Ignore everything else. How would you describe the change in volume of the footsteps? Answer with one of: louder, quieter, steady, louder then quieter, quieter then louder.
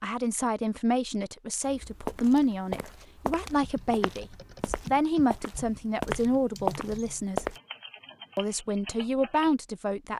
quieter then louder.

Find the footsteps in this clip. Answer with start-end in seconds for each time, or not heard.
1.6-7.6.